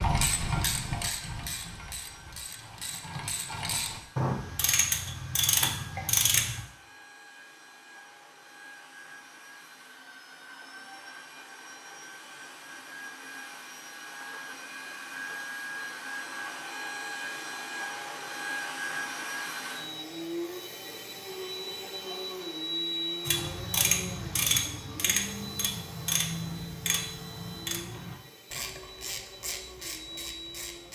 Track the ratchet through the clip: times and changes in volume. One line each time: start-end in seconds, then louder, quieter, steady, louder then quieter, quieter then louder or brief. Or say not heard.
0.0-6.6 quieter then louder
23.2-30.9 quieter.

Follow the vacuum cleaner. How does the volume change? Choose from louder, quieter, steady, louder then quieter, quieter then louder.
louder then quieter.